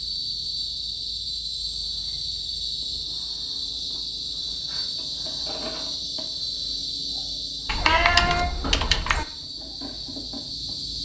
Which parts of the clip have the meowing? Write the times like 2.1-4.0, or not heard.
7.7-9.2.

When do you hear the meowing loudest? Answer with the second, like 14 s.
8 s.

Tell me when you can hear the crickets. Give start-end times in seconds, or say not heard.
0.0-10.9.